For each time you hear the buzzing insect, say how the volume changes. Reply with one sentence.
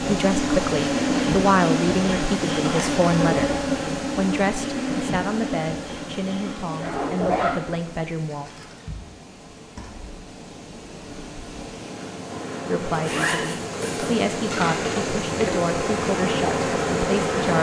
The buzzing insect can be heard from 0.0 to 17.5 s, getting quieter then louder.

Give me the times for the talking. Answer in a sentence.
You can hear the talking from 0.0 to 8.5 s and from 12.7 to 17.5 s.